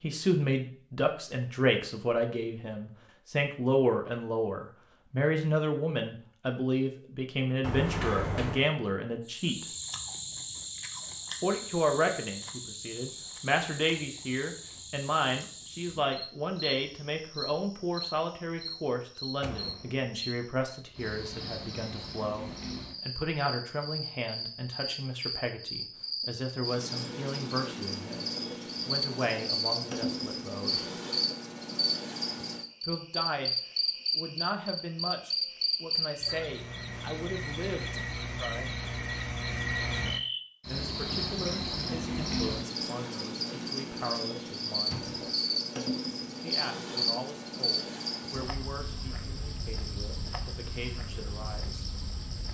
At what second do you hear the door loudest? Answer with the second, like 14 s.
8 s.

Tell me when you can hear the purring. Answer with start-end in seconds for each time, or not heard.
not heard.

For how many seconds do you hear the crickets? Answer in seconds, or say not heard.
43 s.